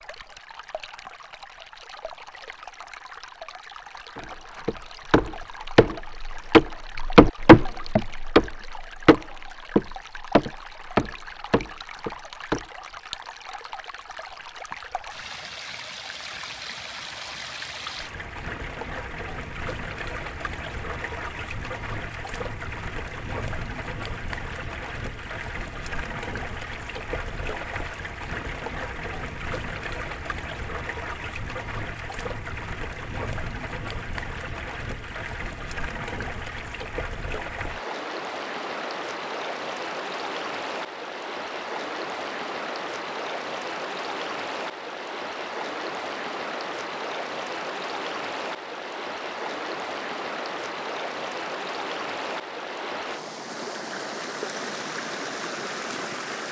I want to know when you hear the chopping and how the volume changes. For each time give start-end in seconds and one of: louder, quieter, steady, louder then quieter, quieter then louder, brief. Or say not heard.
4.2-12.7 louder then quieter.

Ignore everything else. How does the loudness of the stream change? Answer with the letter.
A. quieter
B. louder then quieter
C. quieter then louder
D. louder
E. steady
D.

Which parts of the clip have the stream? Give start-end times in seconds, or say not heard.
0.0-56.4.